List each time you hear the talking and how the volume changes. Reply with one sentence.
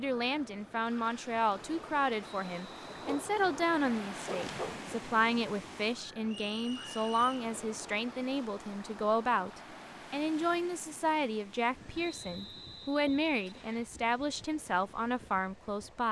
The talking can be heard from 0.0 to 16.0 s, at a steady volume.